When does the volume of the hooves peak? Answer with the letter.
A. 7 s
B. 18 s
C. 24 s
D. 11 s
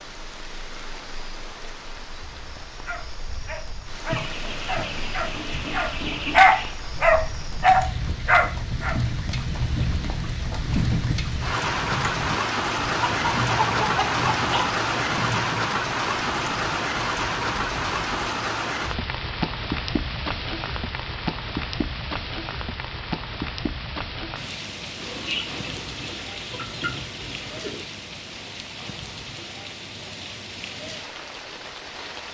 D.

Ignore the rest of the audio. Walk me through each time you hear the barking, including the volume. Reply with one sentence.
You can hear the barking from 2.9 to 9.0 s, getting louder.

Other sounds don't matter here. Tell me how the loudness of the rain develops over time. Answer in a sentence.
The volume of the rain goes up, then down.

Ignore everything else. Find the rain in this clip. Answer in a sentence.
You can hear the rain from 0.0 to 32.2 s.